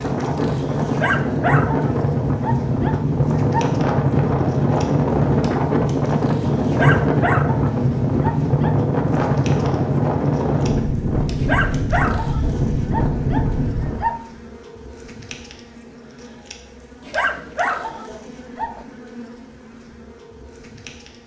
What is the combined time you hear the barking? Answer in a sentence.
The barking can be heard for 10 seconds in total.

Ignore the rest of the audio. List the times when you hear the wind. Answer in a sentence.
The wind can be heard from 0.0 to 14.2 s.